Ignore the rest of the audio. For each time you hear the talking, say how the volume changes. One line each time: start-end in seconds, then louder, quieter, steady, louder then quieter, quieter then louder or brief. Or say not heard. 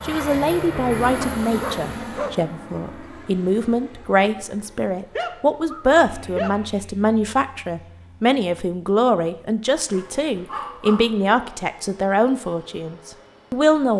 0.0-13.9 steady.